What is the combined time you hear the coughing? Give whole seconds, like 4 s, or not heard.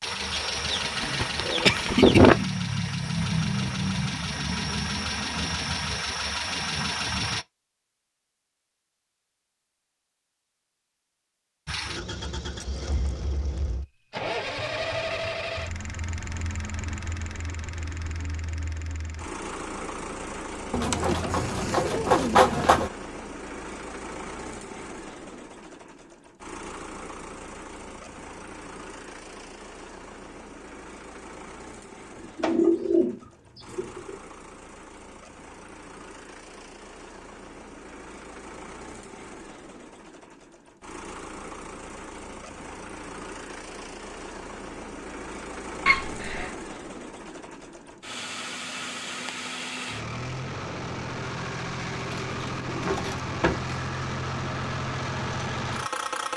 2 s.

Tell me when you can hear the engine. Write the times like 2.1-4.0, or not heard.
0.0-7.5, 11.7-56.3.